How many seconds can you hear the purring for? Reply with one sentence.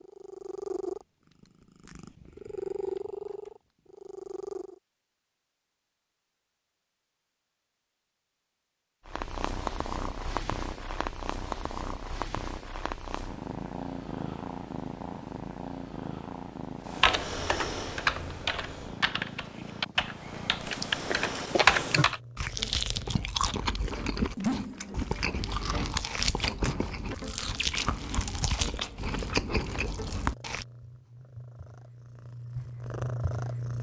The purring can be heard for 23 seconds in total.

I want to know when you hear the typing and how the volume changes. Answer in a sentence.
The typing can be heard from 16.9 to 22.2 s, getting quieter then louder.